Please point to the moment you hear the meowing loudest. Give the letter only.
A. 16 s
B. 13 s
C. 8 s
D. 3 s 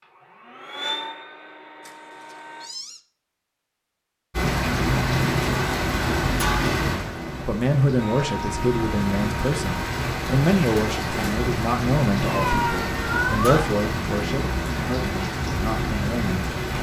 B.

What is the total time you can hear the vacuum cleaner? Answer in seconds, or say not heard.
5 s.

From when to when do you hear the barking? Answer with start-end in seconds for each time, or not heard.
not heard.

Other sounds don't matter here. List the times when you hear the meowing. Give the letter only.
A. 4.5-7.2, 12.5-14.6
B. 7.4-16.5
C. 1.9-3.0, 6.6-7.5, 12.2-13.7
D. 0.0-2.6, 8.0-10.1
C.